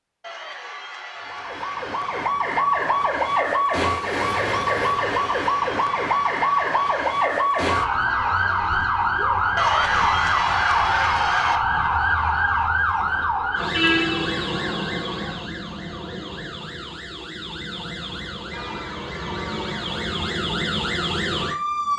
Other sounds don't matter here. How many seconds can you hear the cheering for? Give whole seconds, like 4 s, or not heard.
10 s.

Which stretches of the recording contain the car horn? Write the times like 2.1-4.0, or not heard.
13.7-14.6.